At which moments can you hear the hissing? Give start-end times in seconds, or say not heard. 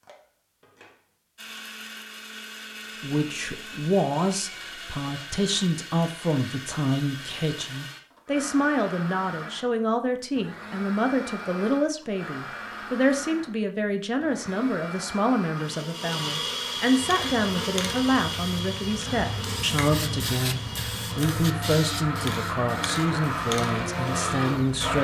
16.9-24.9.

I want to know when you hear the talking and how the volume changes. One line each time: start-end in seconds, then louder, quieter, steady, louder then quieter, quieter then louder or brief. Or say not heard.
3.0-24.9 steady.